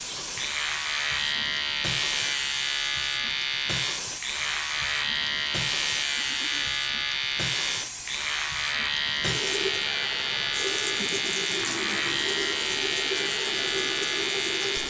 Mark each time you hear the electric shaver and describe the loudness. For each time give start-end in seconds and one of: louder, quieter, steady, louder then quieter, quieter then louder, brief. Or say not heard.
0.3-14.8 steady.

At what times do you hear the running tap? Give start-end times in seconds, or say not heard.
0.0-14.8.